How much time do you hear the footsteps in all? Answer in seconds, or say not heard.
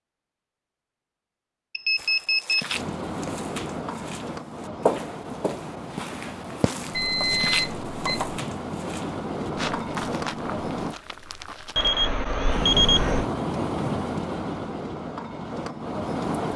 10 s.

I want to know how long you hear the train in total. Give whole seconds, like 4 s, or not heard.
12 s.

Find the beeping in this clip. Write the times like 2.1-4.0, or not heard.
1.7-2.8, 6.9-8.4, 11.8-13.2.